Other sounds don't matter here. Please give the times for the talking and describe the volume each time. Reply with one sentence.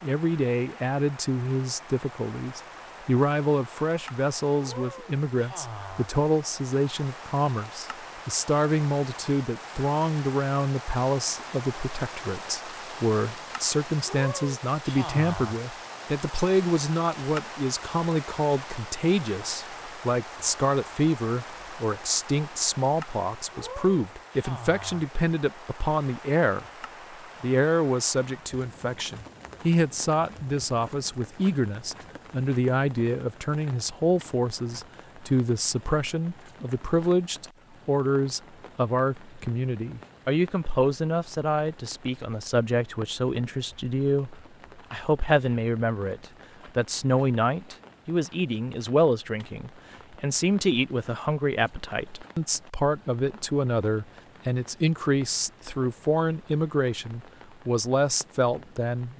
The talking can be heard from 0.0 to 26.6 s, at a steady volume; and from 27.4 to 59.1 s, at a steady volume.